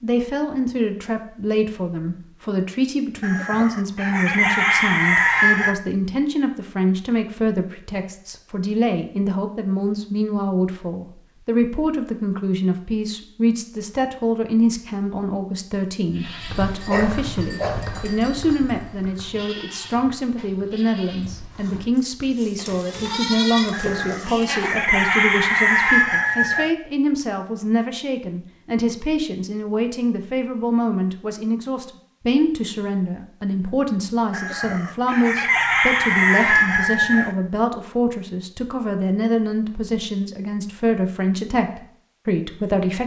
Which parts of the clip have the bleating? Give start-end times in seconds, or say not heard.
16.1-24.9.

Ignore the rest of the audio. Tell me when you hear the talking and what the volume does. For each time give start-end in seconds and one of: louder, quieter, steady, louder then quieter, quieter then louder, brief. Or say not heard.
0.0-43.0 steady.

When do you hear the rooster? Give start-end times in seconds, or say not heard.
3.2-5.8, 23.7-26.8, 34.3-37.4.